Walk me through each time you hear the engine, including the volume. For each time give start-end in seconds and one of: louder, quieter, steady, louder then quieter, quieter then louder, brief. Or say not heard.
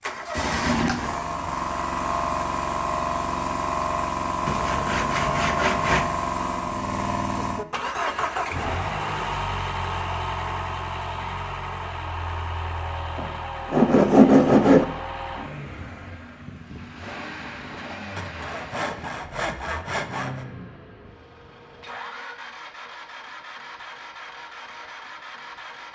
0.0-25.9 quieter.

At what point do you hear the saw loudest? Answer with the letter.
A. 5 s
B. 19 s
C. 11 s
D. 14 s
D.